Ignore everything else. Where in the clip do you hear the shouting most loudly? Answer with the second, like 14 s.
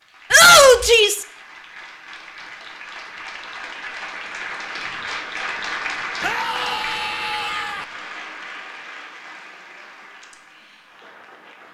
1 s.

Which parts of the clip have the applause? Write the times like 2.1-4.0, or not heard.
0.0-11.6.